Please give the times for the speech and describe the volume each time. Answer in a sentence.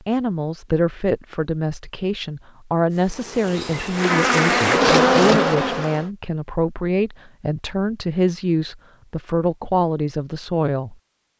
You can hear the speech from 0.1 to 10.9 s, at a steady volume.